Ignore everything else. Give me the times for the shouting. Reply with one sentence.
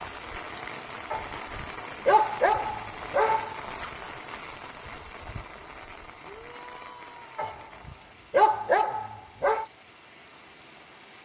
You can hear the shouting from 6.2 to 7.6 s.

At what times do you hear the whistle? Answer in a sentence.
You can't hear the whistle here.